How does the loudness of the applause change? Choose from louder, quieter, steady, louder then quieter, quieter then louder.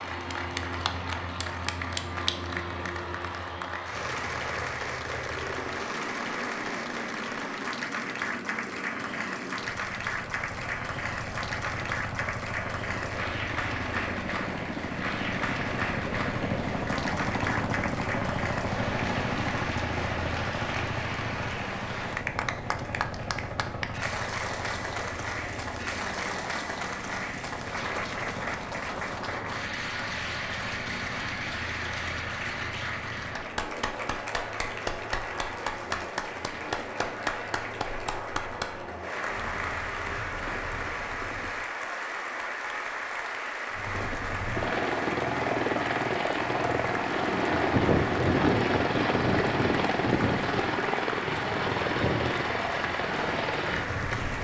steady.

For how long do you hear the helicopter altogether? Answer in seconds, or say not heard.
52 s.